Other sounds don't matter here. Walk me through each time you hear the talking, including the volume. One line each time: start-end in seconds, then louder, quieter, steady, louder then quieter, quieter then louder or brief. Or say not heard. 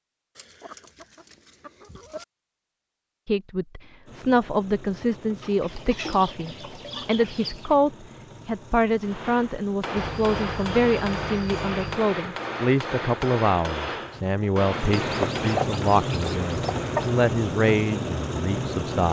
3.2-19.0 steady.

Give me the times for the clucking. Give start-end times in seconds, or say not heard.
0.3-2.2, 5.4-7.8, 9.9-11.9, 14.9-17.1.